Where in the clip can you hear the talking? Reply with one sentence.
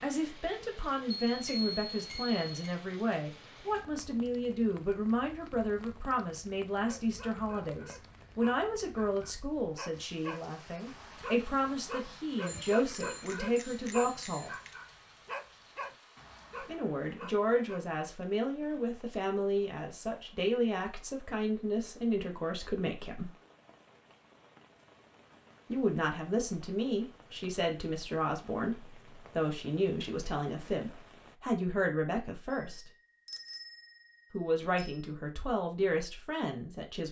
You can hear the talking from 0.0 to 14.6 s, from 16.6 to 23.3 s, from 25.7 to 32.9 s and from 34.3 to 37.0 s.